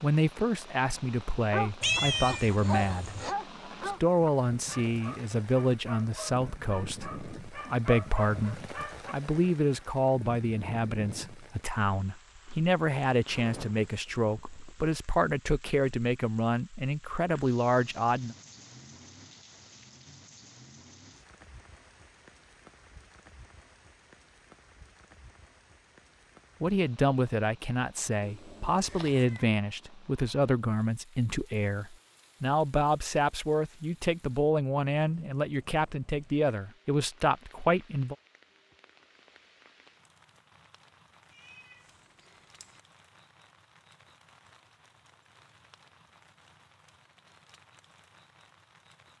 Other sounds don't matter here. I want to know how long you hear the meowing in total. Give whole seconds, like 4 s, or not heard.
4 s.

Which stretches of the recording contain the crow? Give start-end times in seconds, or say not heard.
not heard.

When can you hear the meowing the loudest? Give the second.
2 s.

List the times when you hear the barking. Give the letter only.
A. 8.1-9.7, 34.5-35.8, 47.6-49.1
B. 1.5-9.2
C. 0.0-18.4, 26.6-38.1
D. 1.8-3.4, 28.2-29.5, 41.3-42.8
B.